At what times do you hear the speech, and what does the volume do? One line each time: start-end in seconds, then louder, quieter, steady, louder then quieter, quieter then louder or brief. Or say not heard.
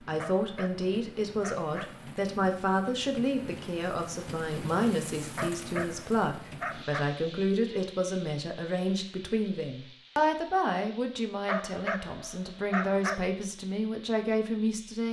0.0-15.0 steady.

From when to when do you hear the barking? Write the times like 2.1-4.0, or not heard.
0.1-2.1, 5.3-7.0, 11.4-13.2.